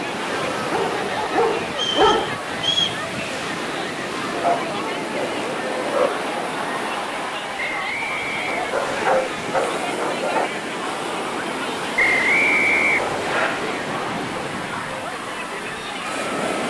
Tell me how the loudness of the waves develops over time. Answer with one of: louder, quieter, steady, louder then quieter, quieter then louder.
steady.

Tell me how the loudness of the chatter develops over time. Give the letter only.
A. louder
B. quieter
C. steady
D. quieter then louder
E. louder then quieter
C.